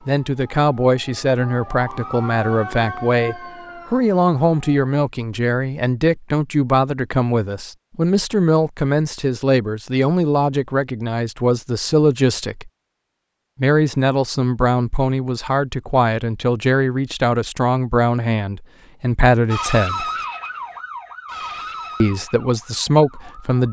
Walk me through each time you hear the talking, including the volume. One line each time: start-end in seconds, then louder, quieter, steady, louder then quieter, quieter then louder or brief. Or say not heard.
0.1-12.7 steady
13.6-20.1 steady
22.0-23.6 brief.